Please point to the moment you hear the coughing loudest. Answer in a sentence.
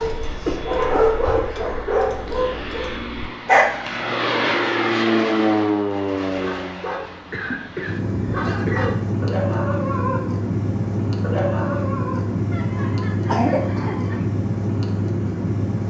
The volume of the coughing peaks at 13 seconds.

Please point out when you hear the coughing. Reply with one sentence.
You can hear the coughing from 0.2 to 1.7 s, from 7.1 to 8.9 s and from 12.5 to 14.2 s.